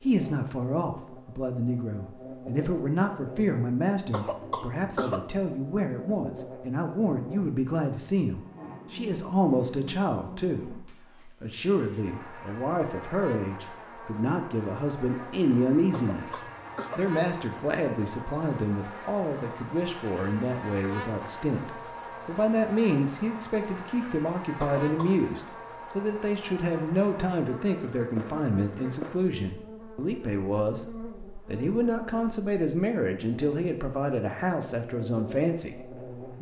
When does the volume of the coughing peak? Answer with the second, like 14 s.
5 s.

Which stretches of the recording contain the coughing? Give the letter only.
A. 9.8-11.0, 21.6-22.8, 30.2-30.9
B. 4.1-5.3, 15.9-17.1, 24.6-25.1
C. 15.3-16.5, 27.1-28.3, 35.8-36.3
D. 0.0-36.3
B.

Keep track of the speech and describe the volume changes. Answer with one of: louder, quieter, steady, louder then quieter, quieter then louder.
steady.